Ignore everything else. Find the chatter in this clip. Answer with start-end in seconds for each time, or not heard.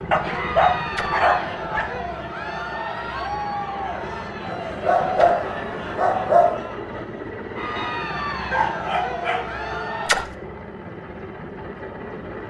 0.0-10.2.